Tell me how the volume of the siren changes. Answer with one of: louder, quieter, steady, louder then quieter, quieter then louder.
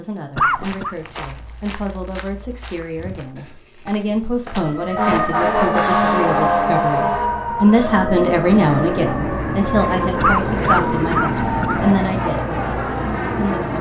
quieter.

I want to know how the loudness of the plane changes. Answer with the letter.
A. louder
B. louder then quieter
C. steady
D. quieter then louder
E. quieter
C.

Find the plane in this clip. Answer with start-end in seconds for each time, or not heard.
7.8-13.7.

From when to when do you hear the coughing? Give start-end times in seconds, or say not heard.
0.3-0.9, 10.2-11.9.